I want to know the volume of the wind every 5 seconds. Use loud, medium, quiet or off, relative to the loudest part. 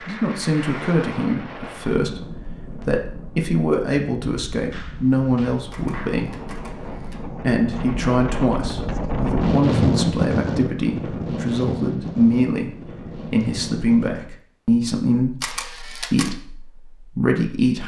medium, loud, loud, off.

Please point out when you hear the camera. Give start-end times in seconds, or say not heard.
5.7-7.2, 15.4-16.4.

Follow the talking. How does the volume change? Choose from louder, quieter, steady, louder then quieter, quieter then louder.
steady.